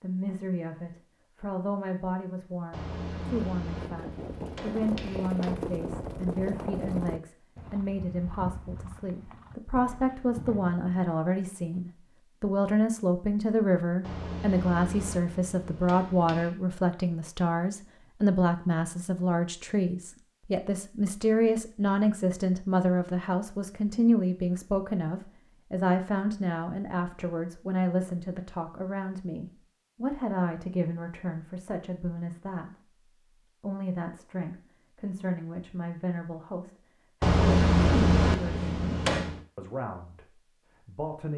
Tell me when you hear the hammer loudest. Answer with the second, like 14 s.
38 s.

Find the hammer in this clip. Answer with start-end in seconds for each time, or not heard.
2.7-5.5, 14.0-16.5, 37.2-39.4.